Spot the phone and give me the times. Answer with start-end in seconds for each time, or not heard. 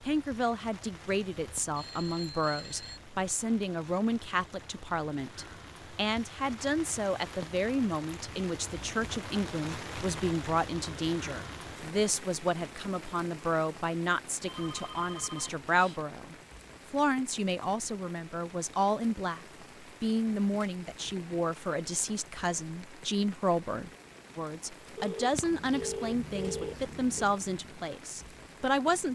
1.2-3.0, 14.4-16.0, 24.9-27.2.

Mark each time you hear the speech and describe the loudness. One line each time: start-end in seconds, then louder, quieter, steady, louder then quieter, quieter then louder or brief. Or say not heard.
0.0-29.1 steady.